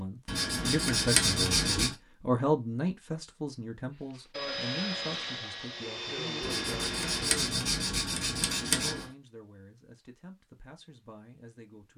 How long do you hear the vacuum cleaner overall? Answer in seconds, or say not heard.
3 s.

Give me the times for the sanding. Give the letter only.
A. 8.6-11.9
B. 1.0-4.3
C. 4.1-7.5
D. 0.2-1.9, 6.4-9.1
D.